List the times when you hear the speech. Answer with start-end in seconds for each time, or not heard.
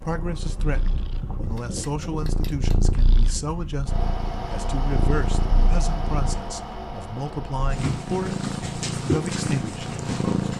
0.0-10.4.